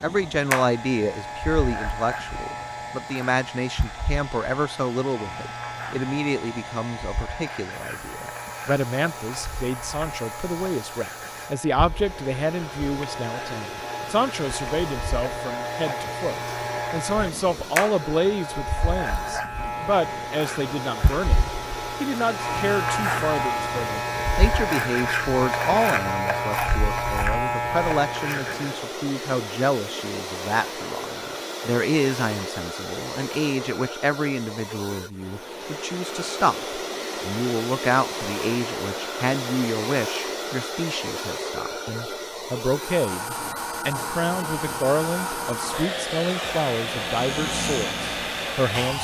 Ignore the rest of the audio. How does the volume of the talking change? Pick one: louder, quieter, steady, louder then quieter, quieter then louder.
steady.